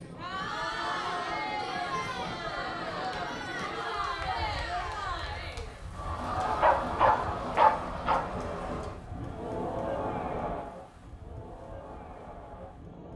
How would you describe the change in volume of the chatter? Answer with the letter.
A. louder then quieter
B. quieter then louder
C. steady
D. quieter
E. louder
D.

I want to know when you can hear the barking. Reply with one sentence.
The barking can be heard from 6.0 to 8.2 s.